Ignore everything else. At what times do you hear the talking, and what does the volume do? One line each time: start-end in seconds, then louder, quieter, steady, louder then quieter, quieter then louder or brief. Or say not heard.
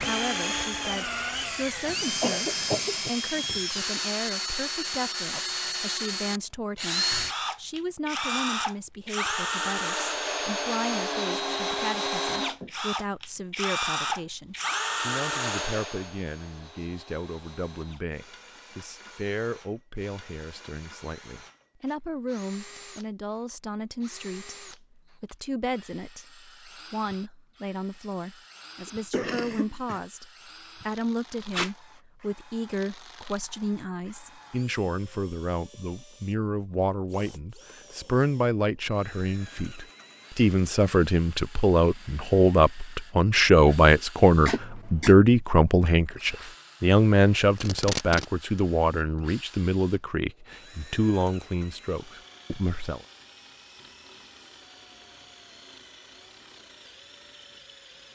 0.0-53.0 louder.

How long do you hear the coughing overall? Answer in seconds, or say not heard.
3 s.